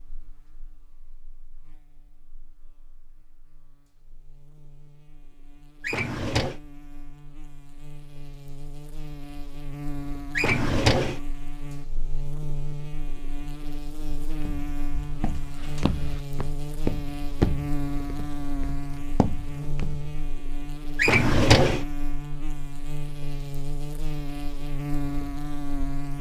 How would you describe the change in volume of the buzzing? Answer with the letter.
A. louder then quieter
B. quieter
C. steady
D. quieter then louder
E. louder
E.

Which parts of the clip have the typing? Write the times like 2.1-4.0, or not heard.
not heard.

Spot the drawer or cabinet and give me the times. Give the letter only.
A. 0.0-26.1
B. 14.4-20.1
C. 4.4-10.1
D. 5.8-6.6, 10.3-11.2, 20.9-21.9
D.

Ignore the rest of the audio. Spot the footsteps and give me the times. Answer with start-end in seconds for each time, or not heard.
14.4-20.1.